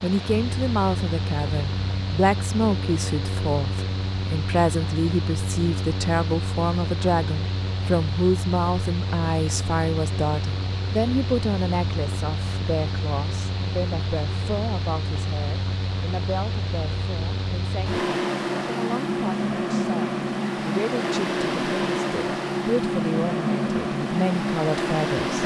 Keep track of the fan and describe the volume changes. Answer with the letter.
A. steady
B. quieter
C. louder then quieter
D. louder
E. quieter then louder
D.